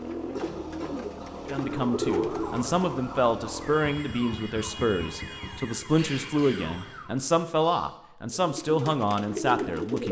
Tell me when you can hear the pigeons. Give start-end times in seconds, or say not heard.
0.0-2.8, 8.3-10.0.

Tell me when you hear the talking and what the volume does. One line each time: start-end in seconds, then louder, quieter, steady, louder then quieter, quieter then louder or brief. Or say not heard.
1.4-10.0 steady.